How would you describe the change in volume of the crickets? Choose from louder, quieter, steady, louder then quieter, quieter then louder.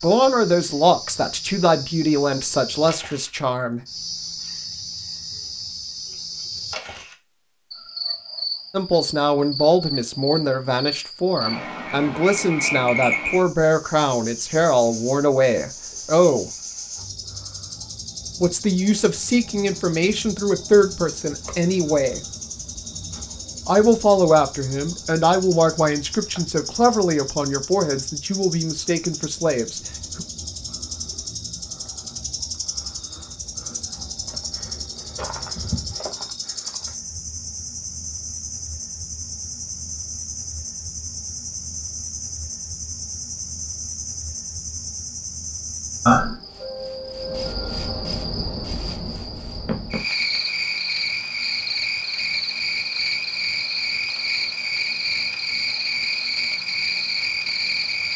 louder.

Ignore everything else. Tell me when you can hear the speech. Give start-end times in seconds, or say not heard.
0.0-3.8, 8.7-16.5, 18.4-22.2, 23.6-30.2.